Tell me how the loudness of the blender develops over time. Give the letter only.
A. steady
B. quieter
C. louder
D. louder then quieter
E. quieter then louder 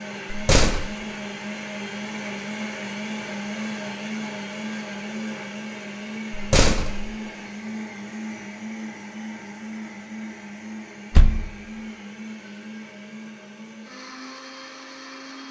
B.